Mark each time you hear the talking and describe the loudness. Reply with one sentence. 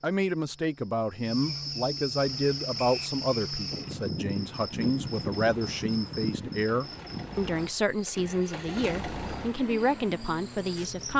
The talking can be heard from 0.0 to 11.1 s, at a steady volume.